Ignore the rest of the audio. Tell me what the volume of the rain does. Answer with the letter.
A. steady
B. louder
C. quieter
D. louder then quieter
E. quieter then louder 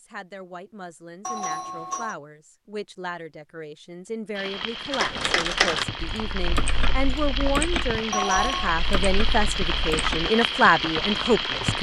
B.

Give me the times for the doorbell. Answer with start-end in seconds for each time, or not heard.
1.2-2.1, 8.1-8.8.